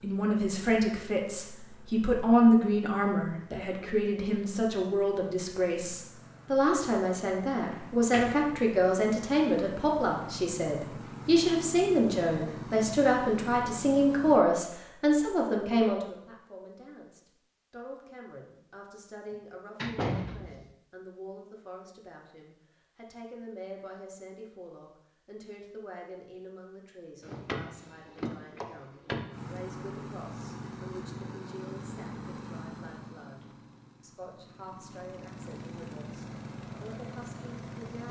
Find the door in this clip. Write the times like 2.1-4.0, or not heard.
7.7-8.5, 19.3-20.6, 27.2-29.5.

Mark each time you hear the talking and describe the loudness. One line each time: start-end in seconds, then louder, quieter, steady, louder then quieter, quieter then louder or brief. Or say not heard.
0.0-38.0 quieter.